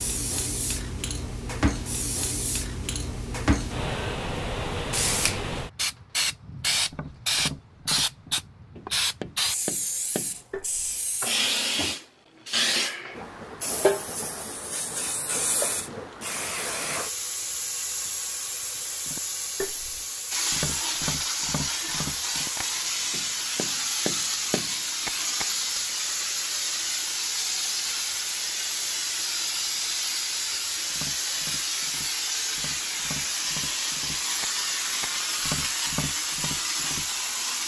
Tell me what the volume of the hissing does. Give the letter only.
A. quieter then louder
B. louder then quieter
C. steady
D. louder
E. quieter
C.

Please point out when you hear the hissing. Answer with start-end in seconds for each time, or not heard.
0.0-37.6.